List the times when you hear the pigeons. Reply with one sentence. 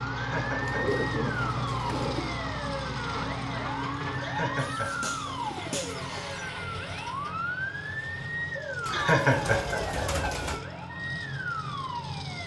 The pigeons can be heard from 0.6 to 2.4 s, from 4.5 to 6.5 s and from 8.8 to 10.6 s.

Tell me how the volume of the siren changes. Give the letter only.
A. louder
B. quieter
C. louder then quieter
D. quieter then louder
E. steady
E.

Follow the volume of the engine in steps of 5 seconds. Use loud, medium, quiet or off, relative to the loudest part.
loud, medium, medium.